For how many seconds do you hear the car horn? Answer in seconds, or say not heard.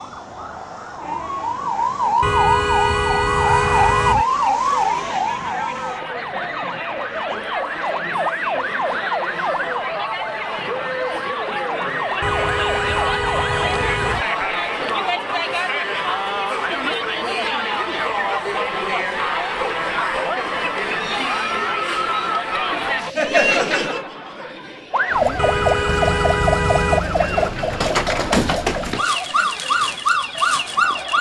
6 s.